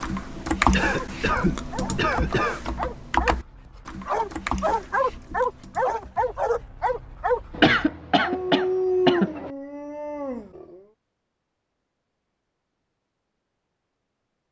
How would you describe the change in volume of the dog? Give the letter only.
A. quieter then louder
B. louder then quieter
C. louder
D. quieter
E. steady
C.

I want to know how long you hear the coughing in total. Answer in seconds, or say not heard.
4 s.